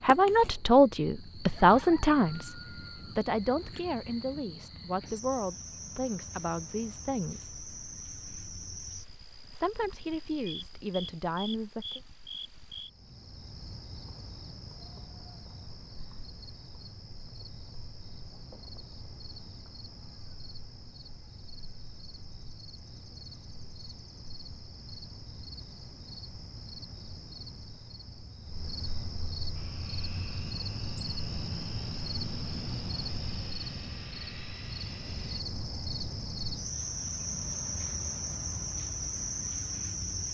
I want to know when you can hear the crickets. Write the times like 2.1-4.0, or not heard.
0.0-40.2.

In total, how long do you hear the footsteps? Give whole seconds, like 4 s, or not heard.
not heard.